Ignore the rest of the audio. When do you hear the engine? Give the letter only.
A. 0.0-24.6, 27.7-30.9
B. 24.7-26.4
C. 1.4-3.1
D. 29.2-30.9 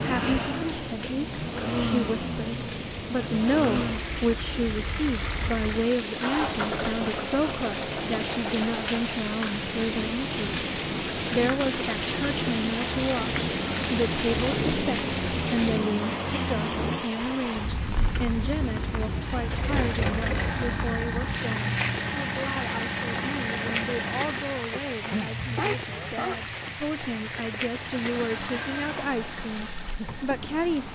A.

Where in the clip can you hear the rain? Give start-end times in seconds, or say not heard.
0.0-30.9.